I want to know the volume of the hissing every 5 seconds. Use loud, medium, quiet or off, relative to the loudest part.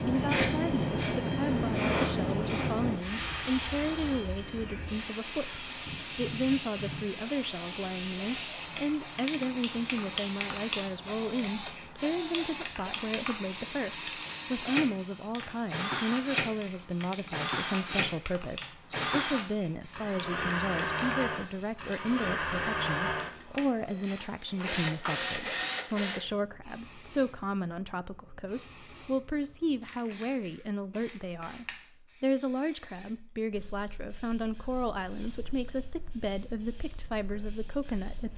loud, medium, medium, quiet, quiet, quiet, quiet, quiet.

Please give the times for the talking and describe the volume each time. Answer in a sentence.
You can hear the talking from 0.1 to 38.3 s, at a steady volume.